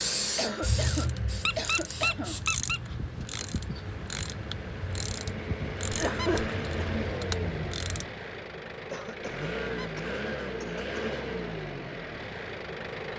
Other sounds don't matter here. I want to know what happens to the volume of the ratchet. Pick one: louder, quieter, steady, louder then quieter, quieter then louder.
steady.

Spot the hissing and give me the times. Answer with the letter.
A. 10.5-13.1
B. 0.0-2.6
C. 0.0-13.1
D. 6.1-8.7
B.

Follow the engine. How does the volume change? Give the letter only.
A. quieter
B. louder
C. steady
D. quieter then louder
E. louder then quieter
B.